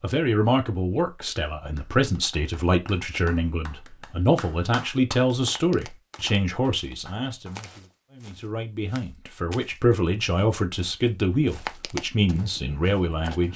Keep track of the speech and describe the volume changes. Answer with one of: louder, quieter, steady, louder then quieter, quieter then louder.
steady.